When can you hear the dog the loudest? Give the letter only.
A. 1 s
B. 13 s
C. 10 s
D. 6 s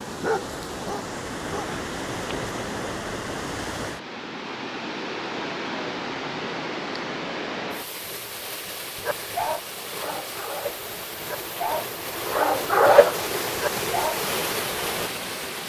B.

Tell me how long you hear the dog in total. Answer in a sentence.
The dog can be heard for 7 seconds in total.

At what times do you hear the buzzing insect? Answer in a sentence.
The buzzing insect can't be heard in this clip.